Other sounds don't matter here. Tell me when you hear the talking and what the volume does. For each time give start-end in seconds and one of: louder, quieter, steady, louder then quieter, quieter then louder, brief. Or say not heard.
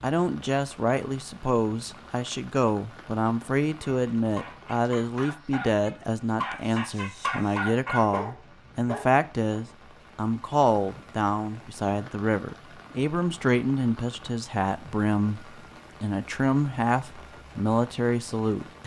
0.0-18.8 steady.